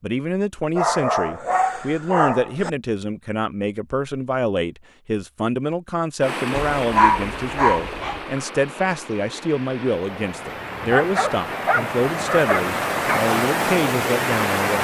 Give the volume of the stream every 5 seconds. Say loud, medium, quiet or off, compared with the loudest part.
off, medium, loud.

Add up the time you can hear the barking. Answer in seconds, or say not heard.
6 s.